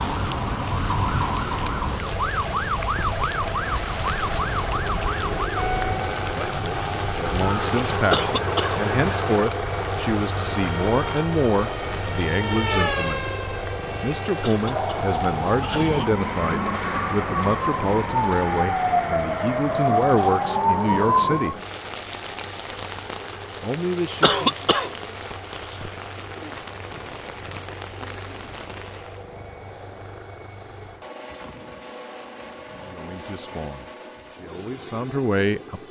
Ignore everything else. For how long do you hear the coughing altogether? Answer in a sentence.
You can hear the coughing for 3 seconds altogether.